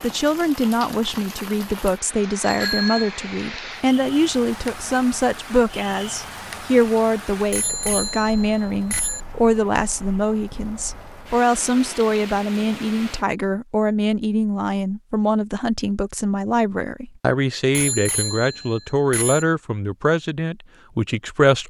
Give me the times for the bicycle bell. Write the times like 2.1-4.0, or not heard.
2.4-3.1, 7.5-9.2, 17.7-19.4.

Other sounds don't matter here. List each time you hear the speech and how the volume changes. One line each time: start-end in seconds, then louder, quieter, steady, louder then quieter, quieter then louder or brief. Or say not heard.
0.0-21.6 steady.